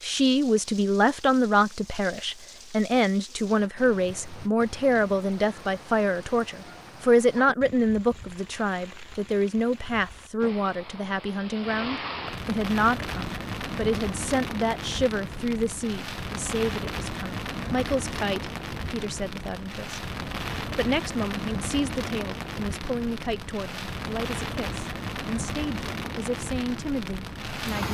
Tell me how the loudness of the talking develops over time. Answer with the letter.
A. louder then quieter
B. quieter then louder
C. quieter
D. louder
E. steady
C.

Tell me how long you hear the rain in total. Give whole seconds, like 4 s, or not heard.
28 s.